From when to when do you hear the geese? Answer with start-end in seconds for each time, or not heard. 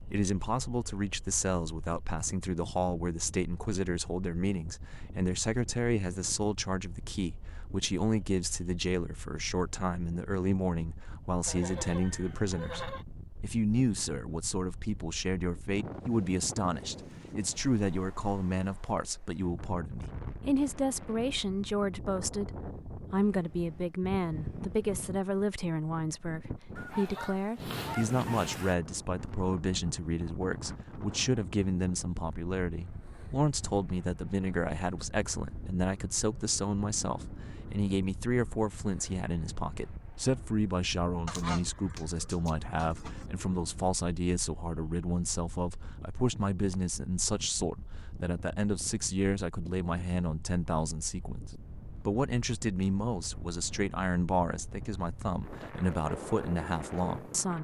11.4-13.1, 26.8-28.8, 41.2-43.2.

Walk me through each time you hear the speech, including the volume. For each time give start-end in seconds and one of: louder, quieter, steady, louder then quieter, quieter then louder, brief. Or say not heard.
0.0-57.5 steady.